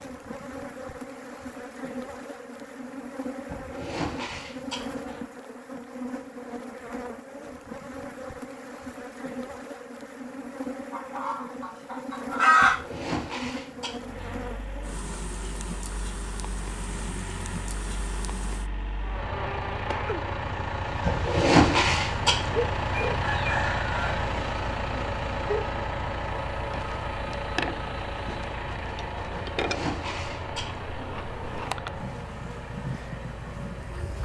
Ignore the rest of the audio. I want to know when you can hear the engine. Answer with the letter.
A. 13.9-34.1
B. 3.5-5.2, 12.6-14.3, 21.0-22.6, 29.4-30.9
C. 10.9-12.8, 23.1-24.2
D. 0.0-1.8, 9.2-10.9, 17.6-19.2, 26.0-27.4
A.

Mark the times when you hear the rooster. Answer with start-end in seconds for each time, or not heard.
10.9-12.8, 23.1-24.2.